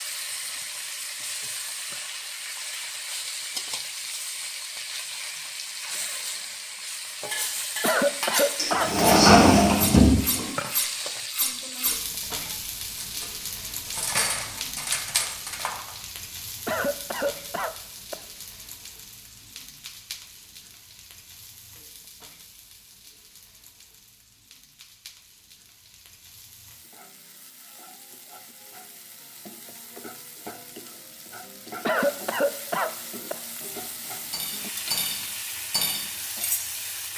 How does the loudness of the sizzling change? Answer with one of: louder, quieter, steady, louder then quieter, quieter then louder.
quieter then louder.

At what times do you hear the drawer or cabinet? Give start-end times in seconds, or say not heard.
8.6-10.5.